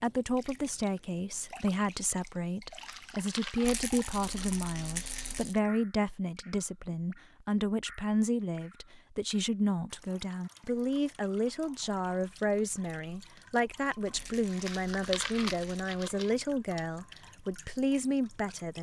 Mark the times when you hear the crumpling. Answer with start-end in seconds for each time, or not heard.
2.7-4.5, 14.4-16.3.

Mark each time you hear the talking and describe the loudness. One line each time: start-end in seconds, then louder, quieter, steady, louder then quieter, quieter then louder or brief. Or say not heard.
0.0-18.7 steady.